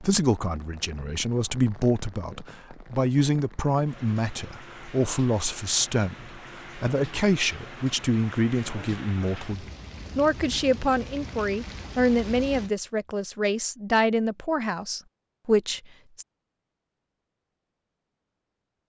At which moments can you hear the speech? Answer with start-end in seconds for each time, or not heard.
0.0-16.2.